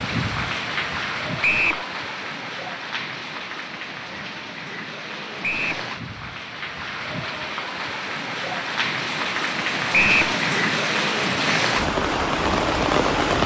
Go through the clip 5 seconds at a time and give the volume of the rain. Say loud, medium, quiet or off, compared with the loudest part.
medium, medium, loud.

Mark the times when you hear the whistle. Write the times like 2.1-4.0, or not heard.
1.4-1.9, 5.4-5.8, 9.9-10.3.